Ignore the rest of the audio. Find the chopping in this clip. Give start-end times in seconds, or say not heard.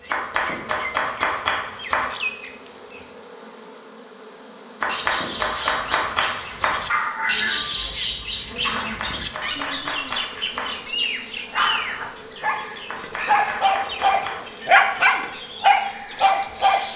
0.1-2.1, 4.8-6.8, 8.7-10.8, 12.8-14.4.